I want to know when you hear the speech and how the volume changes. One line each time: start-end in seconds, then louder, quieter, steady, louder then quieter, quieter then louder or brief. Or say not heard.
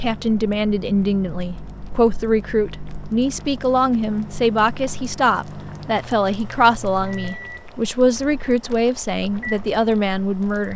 0.0-10.7 steady.